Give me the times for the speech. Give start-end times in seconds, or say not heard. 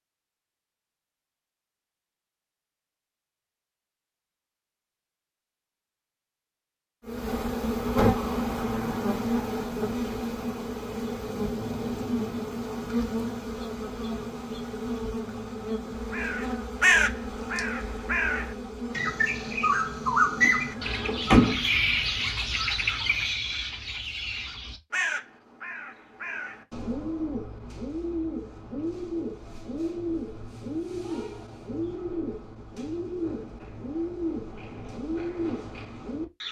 not heard.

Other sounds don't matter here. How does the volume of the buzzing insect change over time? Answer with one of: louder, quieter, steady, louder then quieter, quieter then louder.
quieter.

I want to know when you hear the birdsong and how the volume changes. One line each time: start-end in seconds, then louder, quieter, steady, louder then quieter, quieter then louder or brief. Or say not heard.
16.1-36.4 quieter.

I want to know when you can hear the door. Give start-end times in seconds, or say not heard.
20.4-21.6.